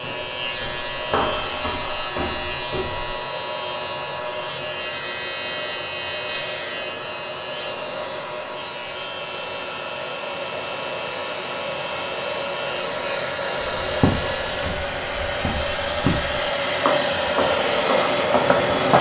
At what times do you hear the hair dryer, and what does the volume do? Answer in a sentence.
You can hear the hair dryer from 0.0 to 18.9 s, getting louder.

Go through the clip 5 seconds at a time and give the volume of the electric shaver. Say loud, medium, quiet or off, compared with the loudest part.
loud, loud, loud, off.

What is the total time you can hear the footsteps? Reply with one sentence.
The footsteps can be heard for 8 seconds in total.